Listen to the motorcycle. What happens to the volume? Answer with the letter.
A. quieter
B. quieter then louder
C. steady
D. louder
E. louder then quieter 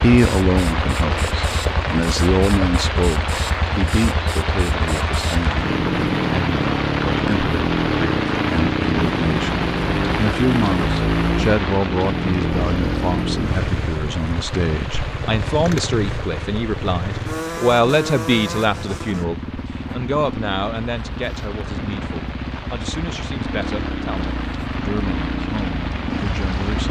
E.